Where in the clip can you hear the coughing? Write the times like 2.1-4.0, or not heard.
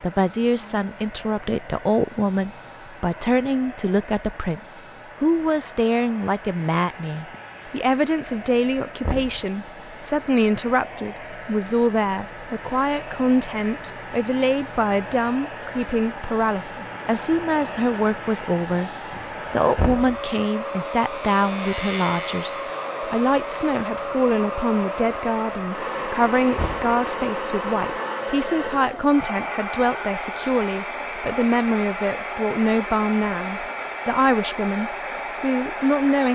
not heard.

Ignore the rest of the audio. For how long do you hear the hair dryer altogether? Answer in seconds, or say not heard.
36 s.